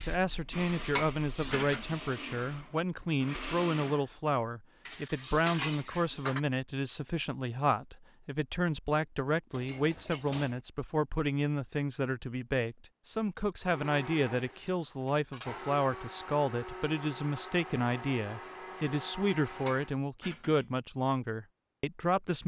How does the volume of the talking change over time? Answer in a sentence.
The volume of the talking stays about the same.